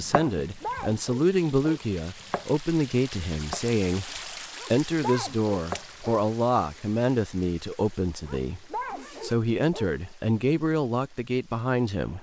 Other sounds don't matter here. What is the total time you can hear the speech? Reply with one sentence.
The speech can be heard for 12 seconds in total.